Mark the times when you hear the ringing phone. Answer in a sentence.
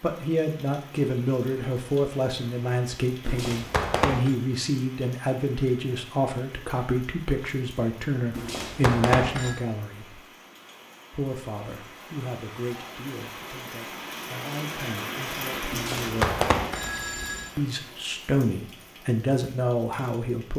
The ringing phone can be heard from 3.2 to 4.3 s, from 8.3 to 9.6 s and from 15.7 to 17.5 s.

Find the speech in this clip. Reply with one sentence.
The speech can be heard from 0.0 to 10.2 s, from 11.1 to 16.4 s and from 17.6 to 20.5 s.